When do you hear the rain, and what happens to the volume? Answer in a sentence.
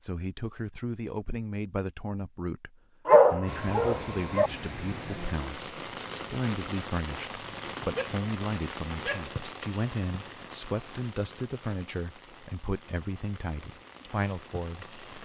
You can hear the rain from 3.5 to 15.2 s, getting quieter.